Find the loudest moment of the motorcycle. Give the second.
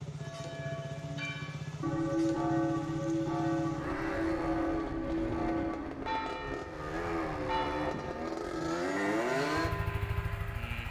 9 s.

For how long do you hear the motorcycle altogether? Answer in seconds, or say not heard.
11 s.